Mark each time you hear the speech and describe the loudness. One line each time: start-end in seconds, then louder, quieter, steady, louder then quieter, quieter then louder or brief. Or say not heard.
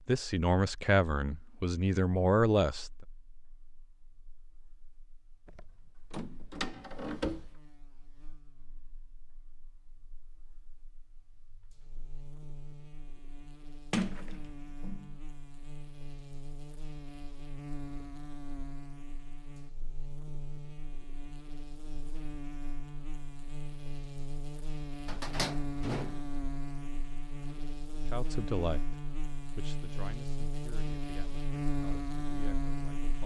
0.1-2.9 brief
28.1-33.2 quieter.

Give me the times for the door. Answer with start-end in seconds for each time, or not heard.
5.5-7.5, 13.9-15.2, 25.1-26.3.